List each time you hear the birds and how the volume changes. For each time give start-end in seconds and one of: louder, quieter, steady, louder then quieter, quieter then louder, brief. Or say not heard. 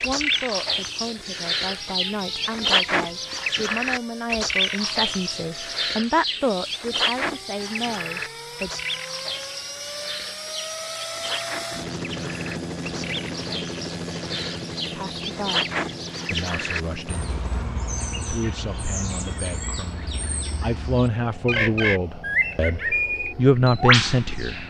0.0-24.6 quieter then louder.